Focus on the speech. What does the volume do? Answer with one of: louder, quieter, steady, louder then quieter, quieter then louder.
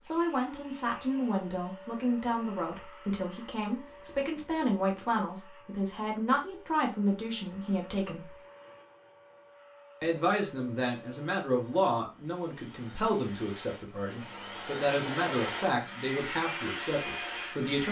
steady.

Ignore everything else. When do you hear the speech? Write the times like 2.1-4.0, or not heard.
0.0-8.3, 10.0-17.8.